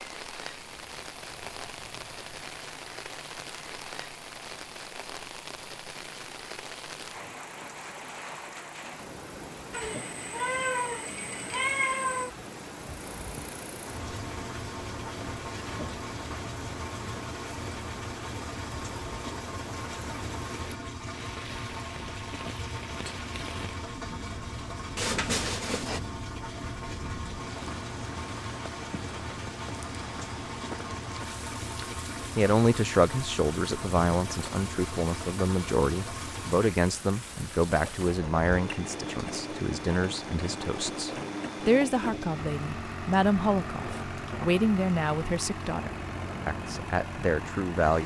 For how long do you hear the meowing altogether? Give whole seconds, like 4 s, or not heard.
4 s.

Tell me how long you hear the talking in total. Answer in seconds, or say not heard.
16 s.